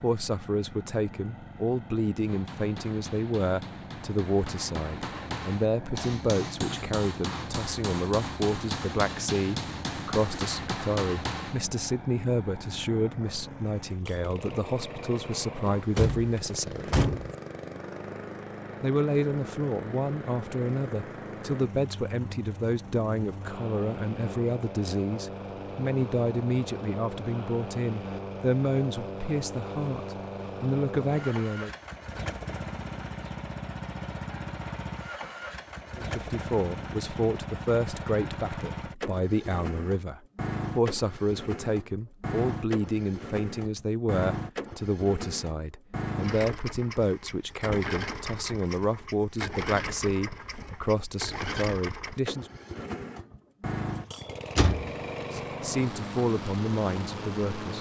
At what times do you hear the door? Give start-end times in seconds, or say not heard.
15.7-17.4, 54.5-55.4.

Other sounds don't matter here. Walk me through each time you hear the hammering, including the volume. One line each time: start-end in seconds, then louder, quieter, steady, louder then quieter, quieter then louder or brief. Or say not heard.
2.2-11.6 louder.